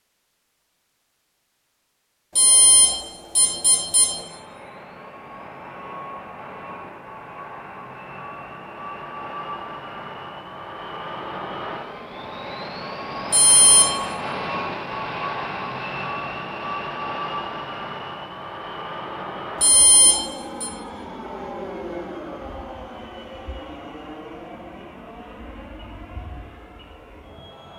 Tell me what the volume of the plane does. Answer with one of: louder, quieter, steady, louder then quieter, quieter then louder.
louder then quieter.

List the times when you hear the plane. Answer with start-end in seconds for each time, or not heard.
4.2-27.7.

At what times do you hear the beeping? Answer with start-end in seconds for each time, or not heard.
2.4-4.2, 13.3-13.9, 19.6-20.7.